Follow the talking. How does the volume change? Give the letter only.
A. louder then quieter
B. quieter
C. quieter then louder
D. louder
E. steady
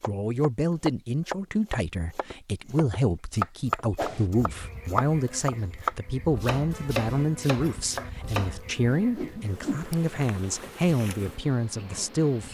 E.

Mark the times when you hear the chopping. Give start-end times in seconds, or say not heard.
0.0-8.6.